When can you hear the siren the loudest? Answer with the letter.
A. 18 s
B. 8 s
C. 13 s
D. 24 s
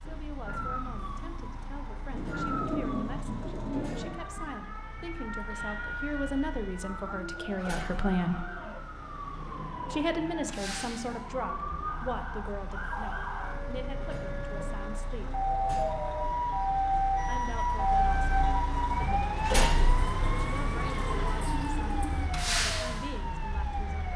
A.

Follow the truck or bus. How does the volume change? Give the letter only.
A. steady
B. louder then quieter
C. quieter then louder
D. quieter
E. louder
E.